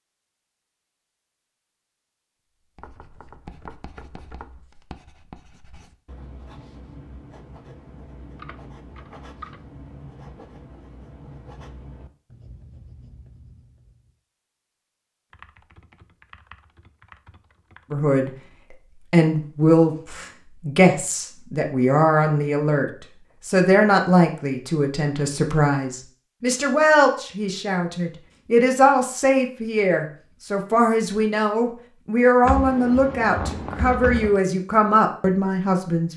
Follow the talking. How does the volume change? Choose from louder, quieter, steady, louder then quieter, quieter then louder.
steady.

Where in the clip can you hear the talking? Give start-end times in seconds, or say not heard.
17.9-36.1.